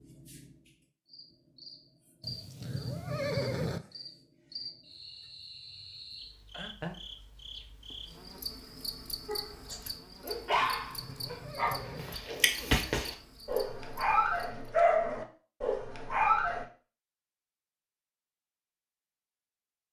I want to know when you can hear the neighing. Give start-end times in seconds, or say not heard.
2.2-3.8, 10.6-12.2.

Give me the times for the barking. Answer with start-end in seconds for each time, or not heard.
9.2-16.6.